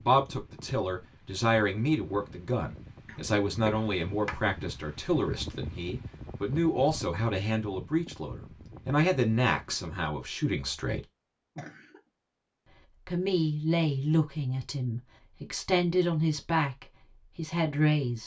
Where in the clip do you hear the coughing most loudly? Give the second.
4 s.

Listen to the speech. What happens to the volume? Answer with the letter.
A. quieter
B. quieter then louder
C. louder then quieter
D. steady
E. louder
D.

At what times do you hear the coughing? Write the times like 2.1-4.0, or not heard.
3.0-4.4, 11.6-12.0.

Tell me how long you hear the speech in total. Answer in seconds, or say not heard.
16 s.